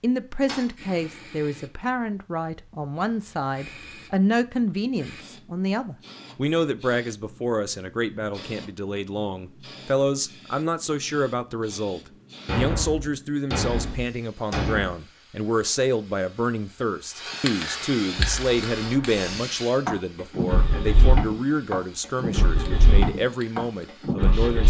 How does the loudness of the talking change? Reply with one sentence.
The loudness of the talking stays about the same.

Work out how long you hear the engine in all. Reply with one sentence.
You can hear the engine for 6 seconds altogether.